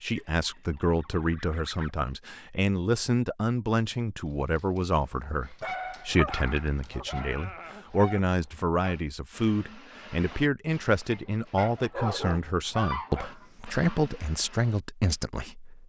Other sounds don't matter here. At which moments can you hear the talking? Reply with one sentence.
The talking can be heard from 0.0 to 15.8 s.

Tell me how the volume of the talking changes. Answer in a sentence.
The loudness of the talking stays about the same.